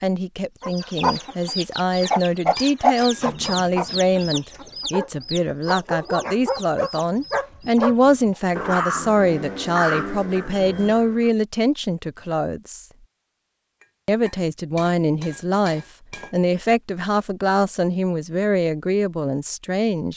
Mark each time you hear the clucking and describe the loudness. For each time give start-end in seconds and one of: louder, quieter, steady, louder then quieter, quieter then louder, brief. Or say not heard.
0.6-8.4 quieter.